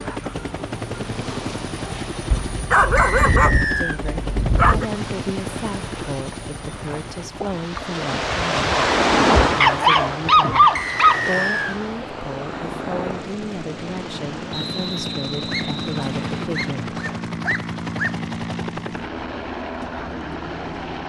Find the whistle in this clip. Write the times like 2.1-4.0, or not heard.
3.0-4.0, 10.8-11.8, 14.5-16.5.